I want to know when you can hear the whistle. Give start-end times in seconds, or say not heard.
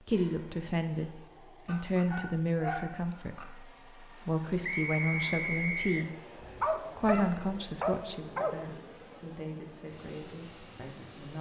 4.6-6.1.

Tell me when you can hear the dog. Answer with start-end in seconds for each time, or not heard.
1.6-3.5, 6.4-8.6.